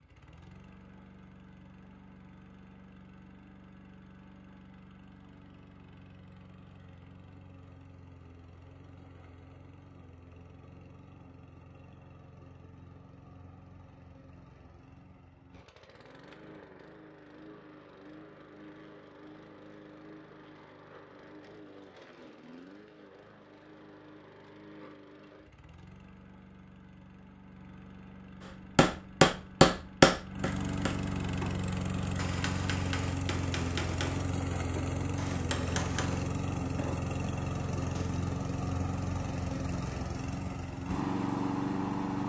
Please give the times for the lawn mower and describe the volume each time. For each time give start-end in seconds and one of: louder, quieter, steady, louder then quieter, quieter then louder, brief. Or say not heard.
0.0-42.2 louder.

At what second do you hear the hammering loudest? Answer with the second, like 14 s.
30 s.